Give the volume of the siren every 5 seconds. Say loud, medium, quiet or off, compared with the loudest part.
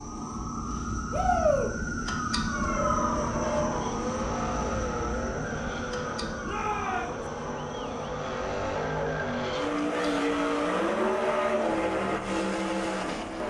loud, medium, quiet.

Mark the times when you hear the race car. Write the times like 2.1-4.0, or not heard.
2.5-13.4.